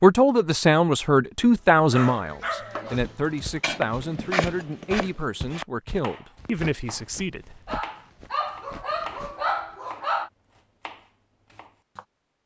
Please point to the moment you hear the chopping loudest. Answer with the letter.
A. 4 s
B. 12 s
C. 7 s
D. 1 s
A.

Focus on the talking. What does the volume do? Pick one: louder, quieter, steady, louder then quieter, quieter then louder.
quieter.